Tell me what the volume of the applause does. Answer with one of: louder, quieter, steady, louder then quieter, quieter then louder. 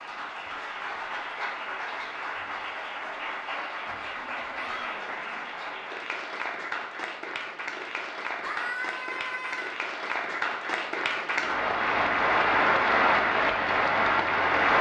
louder.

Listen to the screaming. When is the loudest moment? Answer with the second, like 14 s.
9 s.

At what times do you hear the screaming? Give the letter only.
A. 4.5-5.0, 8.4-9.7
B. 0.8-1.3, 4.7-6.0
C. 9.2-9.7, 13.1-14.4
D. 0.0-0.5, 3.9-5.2
A.